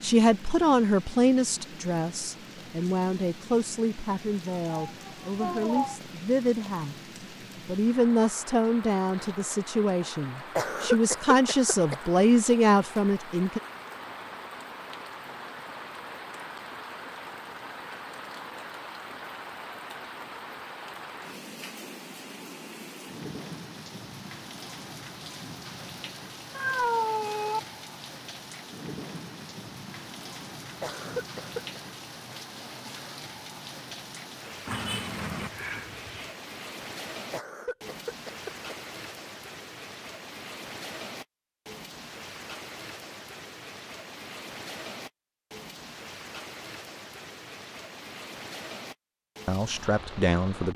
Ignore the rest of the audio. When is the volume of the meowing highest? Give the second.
27 s.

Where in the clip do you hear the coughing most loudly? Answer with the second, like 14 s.
11 s.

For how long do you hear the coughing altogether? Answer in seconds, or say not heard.
4 s.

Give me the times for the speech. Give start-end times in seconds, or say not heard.
0.0-7.0, 7.7-13.6, 49.5-50.7.